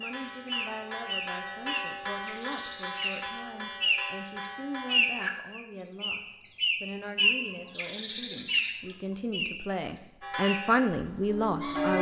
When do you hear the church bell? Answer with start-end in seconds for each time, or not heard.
0.0-5.4, 10.2-11.9.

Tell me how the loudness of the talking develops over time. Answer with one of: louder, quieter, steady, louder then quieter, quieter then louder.
louder.